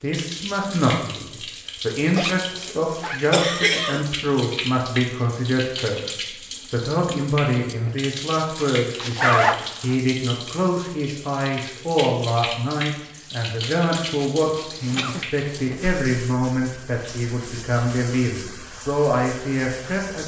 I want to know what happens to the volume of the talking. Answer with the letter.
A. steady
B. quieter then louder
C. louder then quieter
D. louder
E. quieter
A.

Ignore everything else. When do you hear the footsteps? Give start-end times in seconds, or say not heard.
not heard.